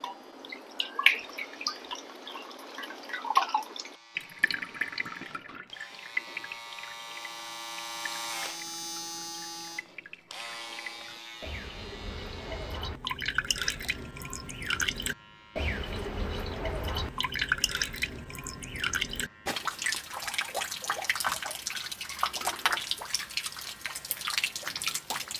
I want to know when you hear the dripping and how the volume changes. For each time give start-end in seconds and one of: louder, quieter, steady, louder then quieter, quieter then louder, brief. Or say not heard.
0.0-25.3 quieter then louder.